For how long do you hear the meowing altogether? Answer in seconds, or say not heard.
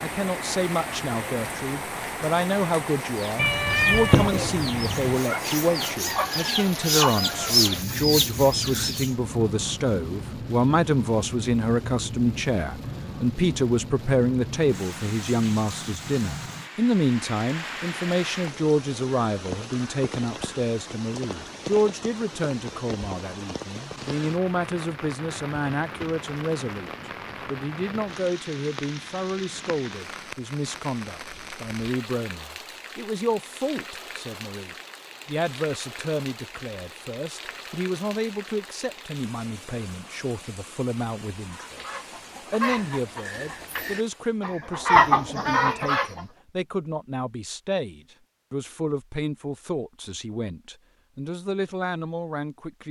2 s.